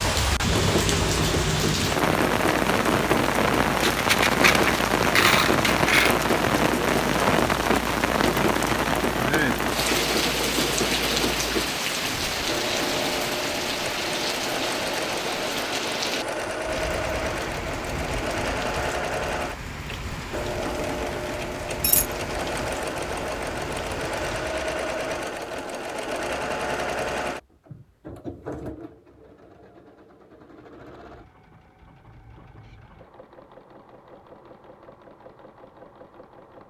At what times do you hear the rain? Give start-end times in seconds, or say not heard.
0.0-24.6.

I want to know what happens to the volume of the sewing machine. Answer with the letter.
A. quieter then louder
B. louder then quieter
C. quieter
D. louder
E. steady
C.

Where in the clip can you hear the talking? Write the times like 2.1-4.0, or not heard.
not heard.